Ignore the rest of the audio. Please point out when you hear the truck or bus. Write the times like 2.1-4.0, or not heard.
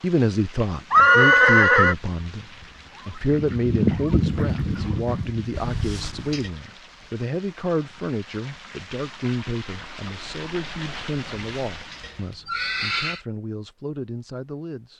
not heard.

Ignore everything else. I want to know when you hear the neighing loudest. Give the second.
1 s.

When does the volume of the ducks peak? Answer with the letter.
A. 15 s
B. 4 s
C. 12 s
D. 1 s
B.